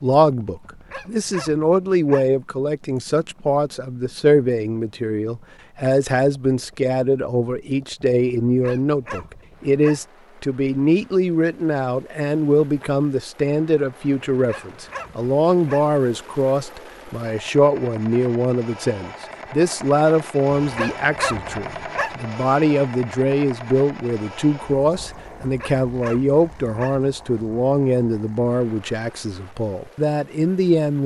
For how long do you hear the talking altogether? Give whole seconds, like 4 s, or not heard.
31 s.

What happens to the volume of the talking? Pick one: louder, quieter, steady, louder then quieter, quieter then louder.
steady.